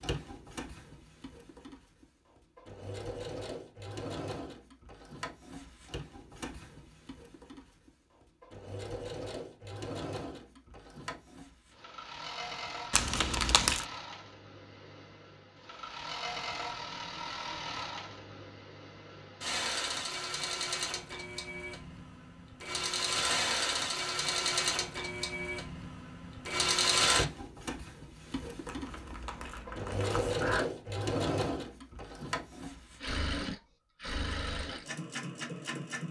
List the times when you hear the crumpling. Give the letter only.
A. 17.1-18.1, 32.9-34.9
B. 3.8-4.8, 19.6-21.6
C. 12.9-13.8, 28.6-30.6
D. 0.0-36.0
C.